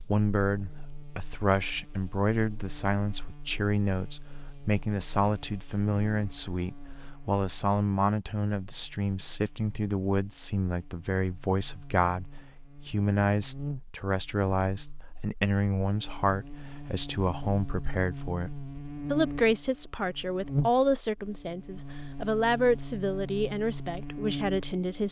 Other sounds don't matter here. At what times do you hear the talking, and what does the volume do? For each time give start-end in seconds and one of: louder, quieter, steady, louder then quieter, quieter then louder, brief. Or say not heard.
0.0-25.0 steady.